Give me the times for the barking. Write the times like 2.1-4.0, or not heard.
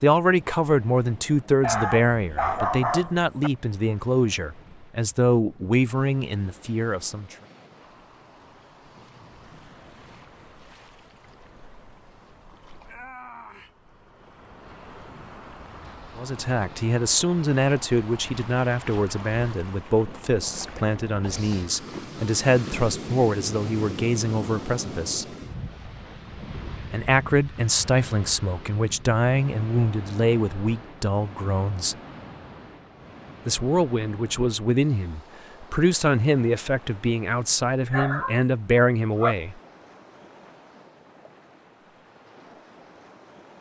1.6-3.5, 37.9-39.4.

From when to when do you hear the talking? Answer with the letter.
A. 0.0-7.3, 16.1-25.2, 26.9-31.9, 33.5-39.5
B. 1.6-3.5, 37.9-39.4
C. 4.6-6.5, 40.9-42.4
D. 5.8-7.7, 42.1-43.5
A.